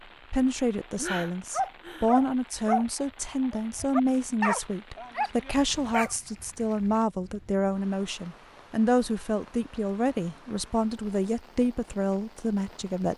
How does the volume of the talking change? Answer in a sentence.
The volume of the talking stays about the same.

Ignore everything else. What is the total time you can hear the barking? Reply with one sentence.
The barking can be heard for 5 seconds in total.